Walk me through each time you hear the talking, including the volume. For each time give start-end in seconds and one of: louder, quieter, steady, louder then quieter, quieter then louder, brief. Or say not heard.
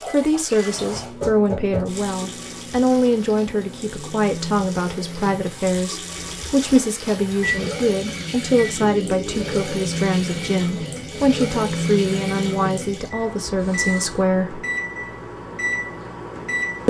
0.1-14.7 steady.